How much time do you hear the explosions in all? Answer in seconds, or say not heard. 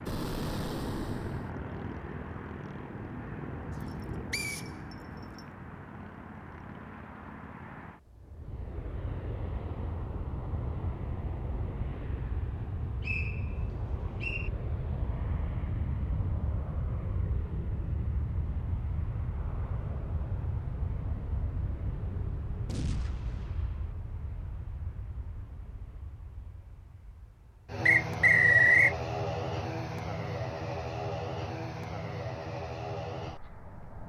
3 s.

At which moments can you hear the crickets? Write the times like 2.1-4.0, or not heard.
not heard.